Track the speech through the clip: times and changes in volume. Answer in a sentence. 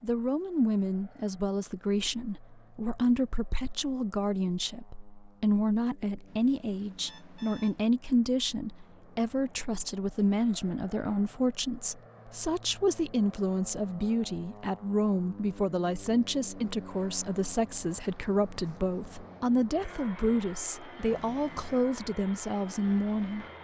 You can hear the speech from 0.0 to 23.4 s, at a steady volume.